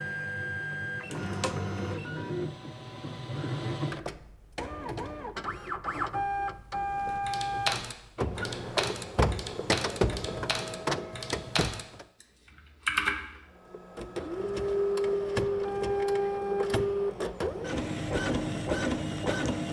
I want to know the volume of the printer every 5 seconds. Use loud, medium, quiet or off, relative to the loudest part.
medium, loud, loud, loud.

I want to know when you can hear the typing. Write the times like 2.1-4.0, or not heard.
6.9-13.4.